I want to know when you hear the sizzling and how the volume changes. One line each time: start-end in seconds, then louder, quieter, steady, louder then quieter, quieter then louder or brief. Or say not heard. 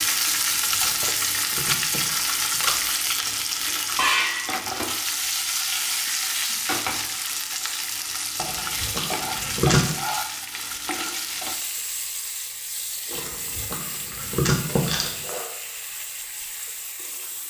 0.0-17.4 quieter.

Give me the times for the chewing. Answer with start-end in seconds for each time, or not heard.
1.6-2.7, 8.4-9.9, 13.2-15.2.